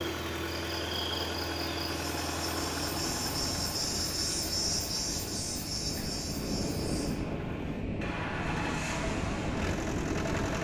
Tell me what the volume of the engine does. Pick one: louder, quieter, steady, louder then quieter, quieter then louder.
quieter then louder.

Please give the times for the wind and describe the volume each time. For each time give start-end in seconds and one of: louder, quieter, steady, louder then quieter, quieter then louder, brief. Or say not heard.
3.0-10.5 louder.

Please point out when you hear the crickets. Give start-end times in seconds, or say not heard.
0.0-7.2.